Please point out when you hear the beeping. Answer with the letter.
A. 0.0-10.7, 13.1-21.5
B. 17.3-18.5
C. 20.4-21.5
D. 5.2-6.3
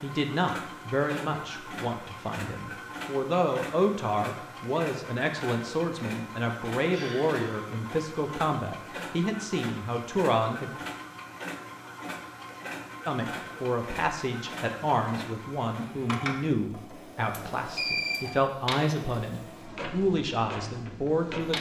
B.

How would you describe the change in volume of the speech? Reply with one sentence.
The volume of the speech stays about the same.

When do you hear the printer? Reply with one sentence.
The printer can be heard from 0.0 to 21.5 s.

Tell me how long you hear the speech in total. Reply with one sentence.
You can hear the speech for 19 seconds altogether.